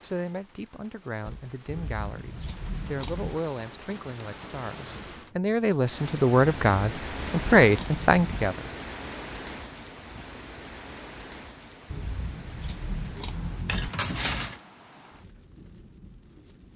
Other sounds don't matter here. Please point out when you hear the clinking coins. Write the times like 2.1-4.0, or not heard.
13.7-14.6.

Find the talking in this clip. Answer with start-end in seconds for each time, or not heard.
0.0-8.6.